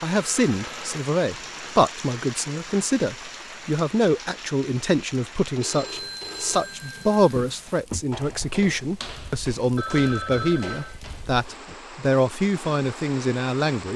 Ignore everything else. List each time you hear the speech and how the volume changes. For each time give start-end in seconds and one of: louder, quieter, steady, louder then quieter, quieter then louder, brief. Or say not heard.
0.0-13.9 steady.